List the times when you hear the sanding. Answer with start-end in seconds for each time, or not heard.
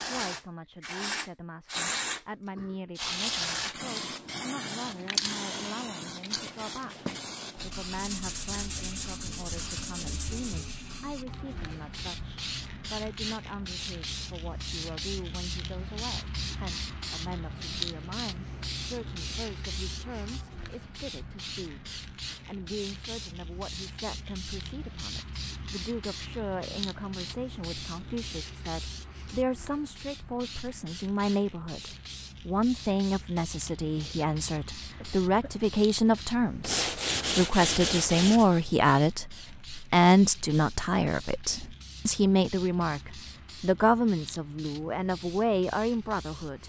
8.0-10.8, 36.6-38.5.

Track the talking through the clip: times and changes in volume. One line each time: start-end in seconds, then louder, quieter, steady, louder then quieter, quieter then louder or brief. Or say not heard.
0.0-46.6 louder.